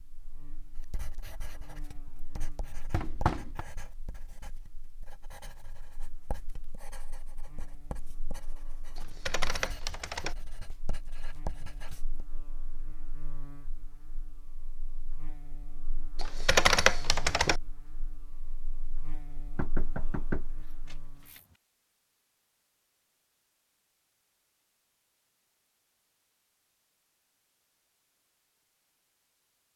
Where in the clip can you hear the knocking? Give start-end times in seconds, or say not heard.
2.9-3.6, 19.6-21.4.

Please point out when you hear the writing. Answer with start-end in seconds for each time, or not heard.
0.8-12.2.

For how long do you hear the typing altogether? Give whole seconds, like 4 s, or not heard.
3 s.